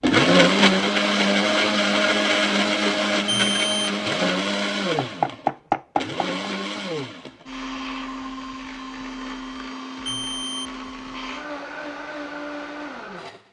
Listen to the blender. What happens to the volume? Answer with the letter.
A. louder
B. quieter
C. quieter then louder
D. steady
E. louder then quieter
B.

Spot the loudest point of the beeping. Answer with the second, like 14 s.
3 s.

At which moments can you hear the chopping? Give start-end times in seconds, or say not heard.
5.0-6.5.